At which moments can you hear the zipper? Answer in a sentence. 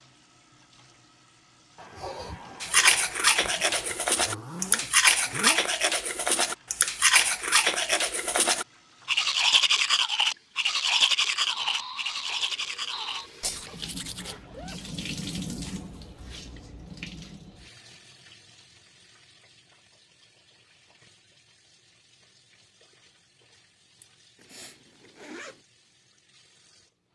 The zipper can be heard from 4.0 to 5.6 s, from 13.7 to 14.8 s and from 24.4 to 25.6 s.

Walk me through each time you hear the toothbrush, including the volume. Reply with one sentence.
The toothbrush can be heard from 2.6 to 14.3 s, getting quieter.